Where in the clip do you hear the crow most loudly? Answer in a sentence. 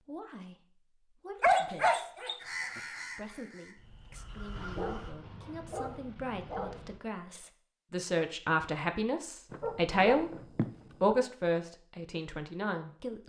The volume of the crow peaks at 3 seconds.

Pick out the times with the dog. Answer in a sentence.
You can hear the dog from 1.4 to 2.8 s, from 4.5 to 7.0 s and from 9.5 to 11.2 s.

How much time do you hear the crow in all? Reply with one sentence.
The crow can be heard for 3 seconds in total.